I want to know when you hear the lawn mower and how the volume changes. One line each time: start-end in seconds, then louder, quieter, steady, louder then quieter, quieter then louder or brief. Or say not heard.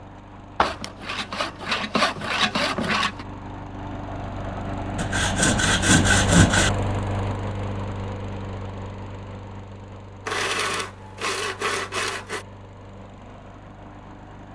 0.0-14.5 louder then quieter.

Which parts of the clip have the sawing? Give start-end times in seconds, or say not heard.
0.6-3.2, 5.0-6.7, 10.2-12.4.